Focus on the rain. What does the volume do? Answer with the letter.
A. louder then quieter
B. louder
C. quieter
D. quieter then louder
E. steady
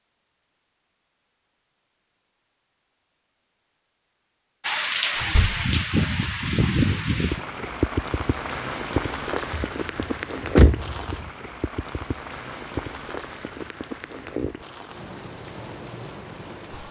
C.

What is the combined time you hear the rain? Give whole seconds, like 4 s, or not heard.
12 s.